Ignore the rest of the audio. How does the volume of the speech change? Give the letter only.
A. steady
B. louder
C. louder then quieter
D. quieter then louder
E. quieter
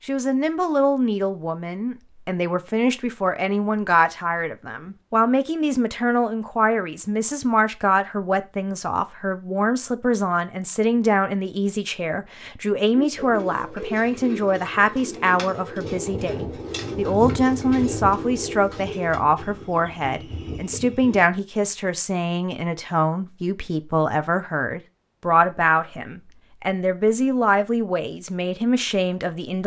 A.